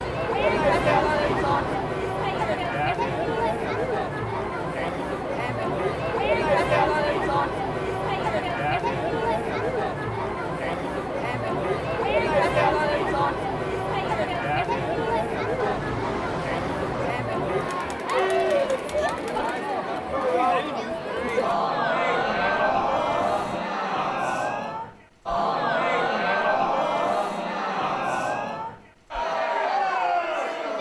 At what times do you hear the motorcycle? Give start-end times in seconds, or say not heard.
not heard.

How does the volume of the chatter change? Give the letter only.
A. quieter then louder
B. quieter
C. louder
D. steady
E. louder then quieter
D.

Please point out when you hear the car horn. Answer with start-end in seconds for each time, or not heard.
0.4-1.9, 15.6-17.1, 22.2-23.6.